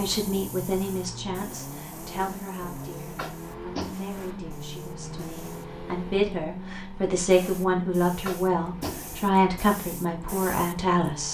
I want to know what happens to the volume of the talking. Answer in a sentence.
The volume of the talking goes down, then up.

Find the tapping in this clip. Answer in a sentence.
You can hear the tapping from 3.1 to 4.0 s and from 8.2 to 9.1 s.